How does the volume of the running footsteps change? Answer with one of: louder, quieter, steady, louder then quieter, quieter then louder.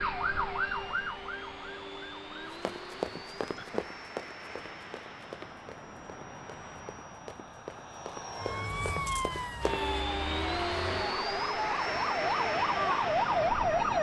quieter then louder.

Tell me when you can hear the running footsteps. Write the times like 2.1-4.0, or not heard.
2.5-9.8.